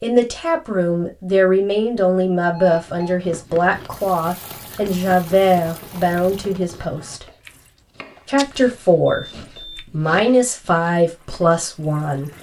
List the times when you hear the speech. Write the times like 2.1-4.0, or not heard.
0.0-7.2, 8.2-12.3.